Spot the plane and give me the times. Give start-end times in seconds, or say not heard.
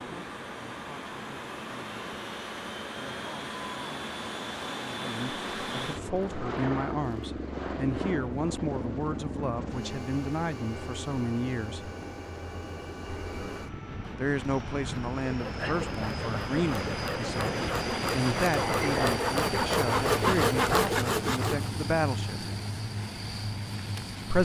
0.0-24.4.